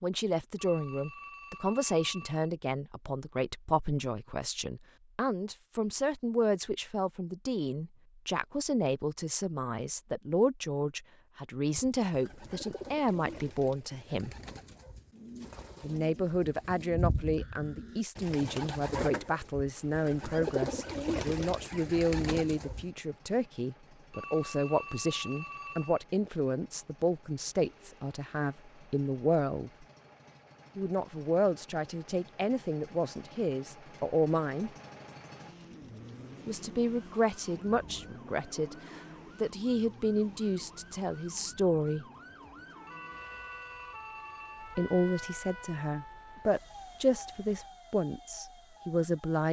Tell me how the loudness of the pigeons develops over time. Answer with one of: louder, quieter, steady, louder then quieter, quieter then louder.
louder.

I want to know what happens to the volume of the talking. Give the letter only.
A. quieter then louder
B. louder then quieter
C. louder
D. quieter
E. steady
E.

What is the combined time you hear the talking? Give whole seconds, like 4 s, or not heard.
43 s.